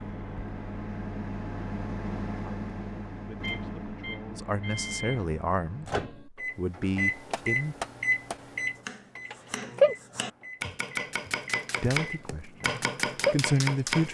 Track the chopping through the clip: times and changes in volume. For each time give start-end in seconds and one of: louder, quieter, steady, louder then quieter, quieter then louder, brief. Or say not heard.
7.2-14.0 quieter then louder.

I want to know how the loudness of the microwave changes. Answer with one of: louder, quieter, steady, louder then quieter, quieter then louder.
louder then quieter.